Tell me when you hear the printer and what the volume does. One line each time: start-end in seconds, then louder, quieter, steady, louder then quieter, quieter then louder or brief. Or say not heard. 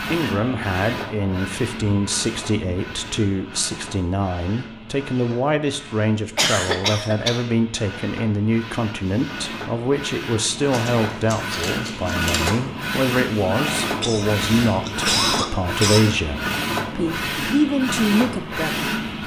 0.0-19.2 quieter then louder.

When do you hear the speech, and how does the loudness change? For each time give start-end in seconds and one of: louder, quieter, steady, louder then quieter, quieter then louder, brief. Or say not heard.
0.1-18.9 steady.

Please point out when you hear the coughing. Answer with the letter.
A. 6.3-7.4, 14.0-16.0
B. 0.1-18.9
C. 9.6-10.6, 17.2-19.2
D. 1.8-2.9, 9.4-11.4
A.